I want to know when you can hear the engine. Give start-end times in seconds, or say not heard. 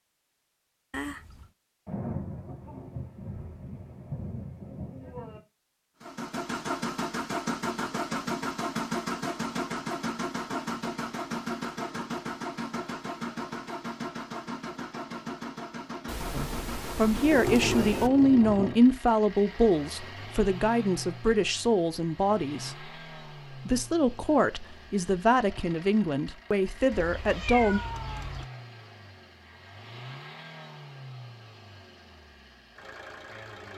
6.0-33.7.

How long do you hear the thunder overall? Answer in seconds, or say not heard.
5 s.